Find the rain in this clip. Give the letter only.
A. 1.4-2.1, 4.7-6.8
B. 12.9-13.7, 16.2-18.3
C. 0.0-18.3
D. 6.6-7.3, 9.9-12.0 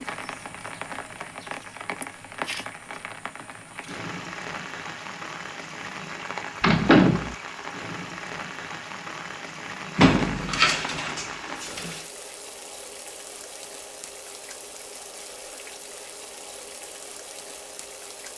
C.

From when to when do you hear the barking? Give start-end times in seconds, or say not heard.
not heard.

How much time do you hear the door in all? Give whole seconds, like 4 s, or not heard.
3 s.